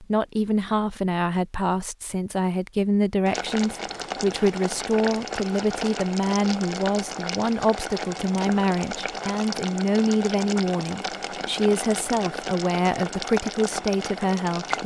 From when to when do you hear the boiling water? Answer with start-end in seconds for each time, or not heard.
3.2-14.8.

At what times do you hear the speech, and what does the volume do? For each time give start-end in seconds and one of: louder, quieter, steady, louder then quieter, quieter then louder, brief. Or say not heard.
0.0-14.8 steady.